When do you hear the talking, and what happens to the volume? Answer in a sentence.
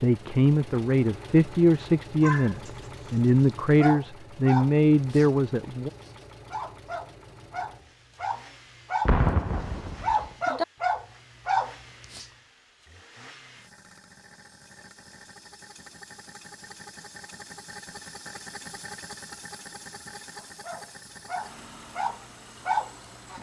The talking can be heard from 0.0 to 5.9 s, at a steady volume.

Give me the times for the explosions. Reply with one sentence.
You can hear the explosions from 9.1 to 10.3 s.